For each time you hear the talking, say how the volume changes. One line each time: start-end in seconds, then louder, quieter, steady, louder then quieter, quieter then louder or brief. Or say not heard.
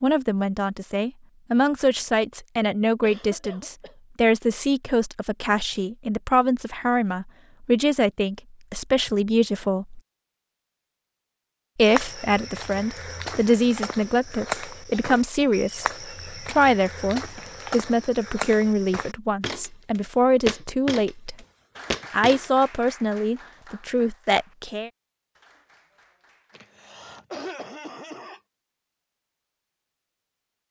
0.0-10.0 steady
11.8-21.4 steady
22.1-24.9 brief.